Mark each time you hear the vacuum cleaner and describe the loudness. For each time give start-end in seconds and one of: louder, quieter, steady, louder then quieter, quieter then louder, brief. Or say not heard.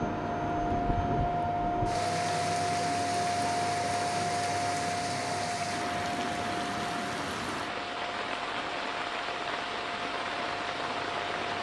0.0-11.5 quieter.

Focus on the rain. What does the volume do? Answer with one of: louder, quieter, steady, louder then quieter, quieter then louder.
steady.